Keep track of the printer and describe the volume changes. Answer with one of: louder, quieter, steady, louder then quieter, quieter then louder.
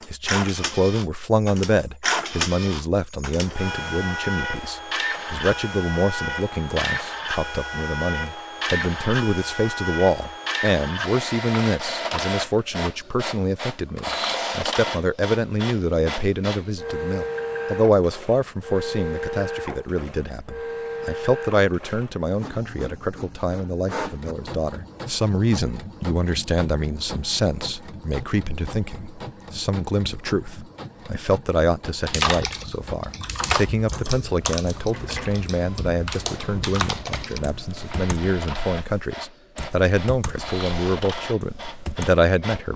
quieter.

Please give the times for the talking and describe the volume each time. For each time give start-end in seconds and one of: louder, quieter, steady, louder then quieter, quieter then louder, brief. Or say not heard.
0.1-42.7 steady.